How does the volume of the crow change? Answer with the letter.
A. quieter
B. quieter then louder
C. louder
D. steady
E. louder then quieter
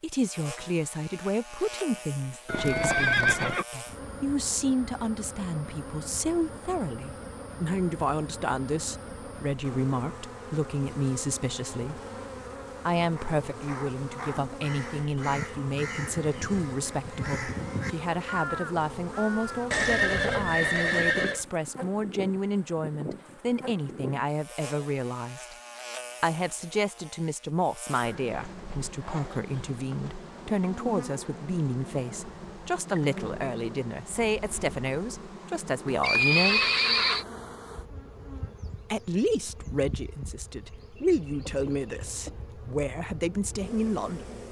C.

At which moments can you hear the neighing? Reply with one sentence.
The neighing can be heard from 2.5 to 3.6 s, from 19.7 to 21.4 s and from 36.0 to 37.2 s.